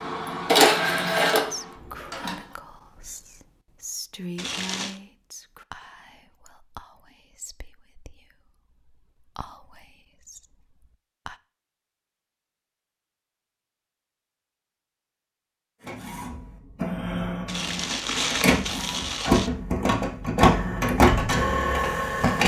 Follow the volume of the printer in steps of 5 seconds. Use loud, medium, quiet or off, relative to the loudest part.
loud, off, off, medium, loud.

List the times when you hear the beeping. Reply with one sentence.
The beeping can't be heard in this clip.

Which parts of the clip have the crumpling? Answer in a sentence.
The crumpling can be heard from 4.3 to 5.0 s and from 17.4 to 19.5 s.